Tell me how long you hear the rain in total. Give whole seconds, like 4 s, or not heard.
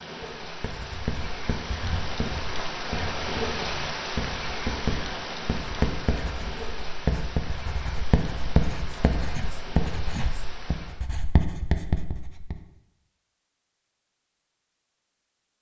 11 s.